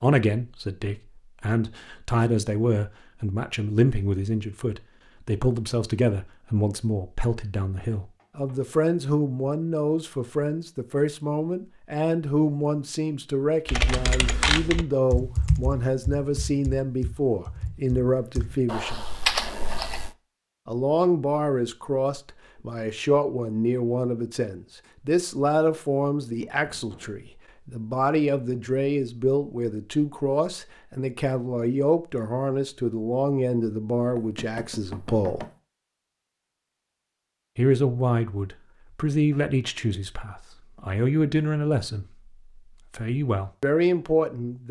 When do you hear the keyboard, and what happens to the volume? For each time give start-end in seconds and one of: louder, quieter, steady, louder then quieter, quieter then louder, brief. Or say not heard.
13.7-20.1 quieter then louder.